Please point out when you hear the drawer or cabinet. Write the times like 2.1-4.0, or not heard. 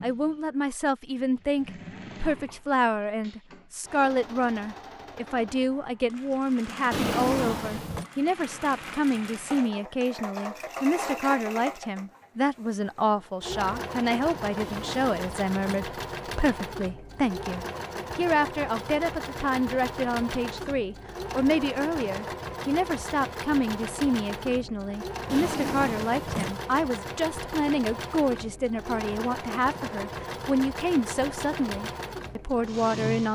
6.9-8.1, 14.6-15.9, 25.2-26.6.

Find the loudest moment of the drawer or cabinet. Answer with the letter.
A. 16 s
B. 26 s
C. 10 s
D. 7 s
D.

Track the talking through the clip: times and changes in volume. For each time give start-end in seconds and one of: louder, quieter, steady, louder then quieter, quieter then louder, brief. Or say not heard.
0.0-33.3 steady.